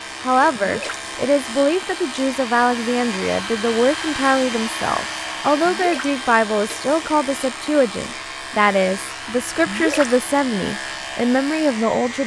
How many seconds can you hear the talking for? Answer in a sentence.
You can hear the talking for 12 seconds altogether.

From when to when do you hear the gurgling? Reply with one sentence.
You can hear the gurgling from 0.5 to 1.1 s, from 5.5 to 6.0 s and from 9.6 to 10.1 s.